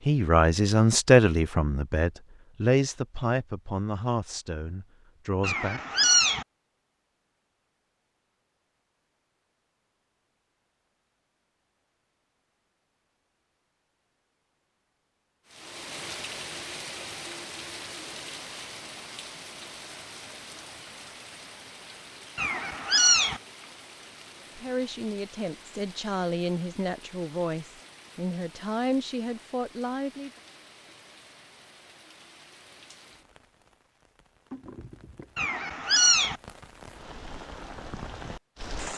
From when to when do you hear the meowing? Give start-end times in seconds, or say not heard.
5.4-6.5, 22.4-23.4, 35.4-36.4.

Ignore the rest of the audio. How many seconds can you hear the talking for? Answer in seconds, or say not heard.
12 s.